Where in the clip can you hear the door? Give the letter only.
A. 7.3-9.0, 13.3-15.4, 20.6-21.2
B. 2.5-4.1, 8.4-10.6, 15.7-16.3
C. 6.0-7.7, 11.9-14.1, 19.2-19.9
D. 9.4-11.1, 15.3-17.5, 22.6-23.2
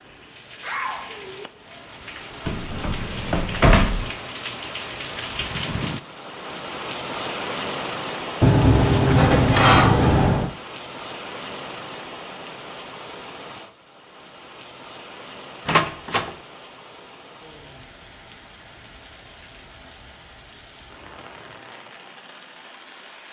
B.